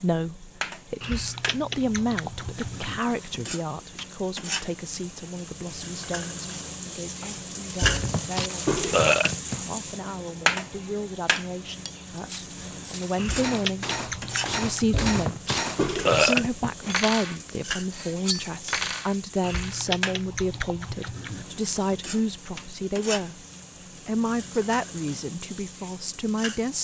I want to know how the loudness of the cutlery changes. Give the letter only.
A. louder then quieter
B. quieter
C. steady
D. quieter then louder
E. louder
E.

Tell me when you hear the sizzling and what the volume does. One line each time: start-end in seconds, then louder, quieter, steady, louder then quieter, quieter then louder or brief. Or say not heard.
0.0-26.7 louder then quieter.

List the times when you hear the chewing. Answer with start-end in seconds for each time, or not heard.
1.0-3.0, 13.2-15.1, 19.4-21.4.